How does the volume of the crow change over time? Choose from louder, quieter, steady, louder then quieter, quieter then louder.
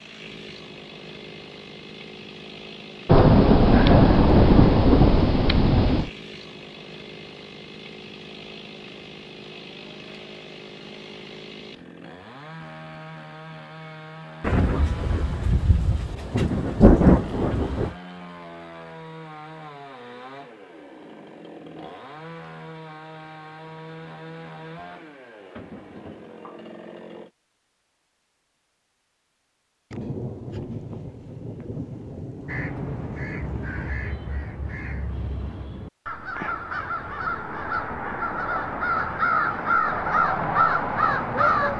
louder.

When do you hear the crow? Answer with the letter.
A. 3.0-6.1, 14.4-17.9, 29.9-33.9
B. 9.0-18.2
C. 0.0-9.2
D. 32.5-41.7
D.